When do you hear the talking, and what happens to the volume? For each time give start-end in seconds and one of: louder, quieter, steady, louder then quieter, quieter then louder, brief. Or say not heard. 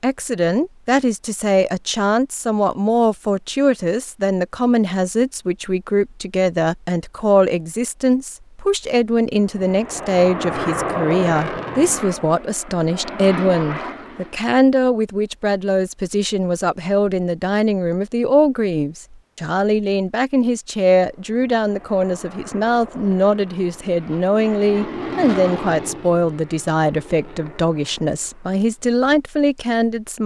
0.0-30.2 steady.